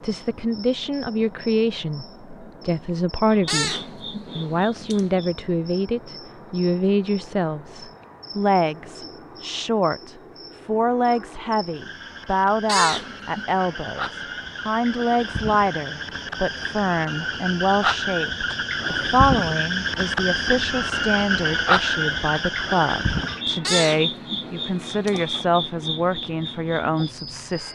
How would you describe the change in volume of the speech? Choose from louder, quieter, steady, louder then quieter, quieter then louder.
steady.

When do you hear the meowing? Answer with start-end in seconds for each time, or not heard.
3.5-5.1, 12.7-13.4, 23.6-25.4.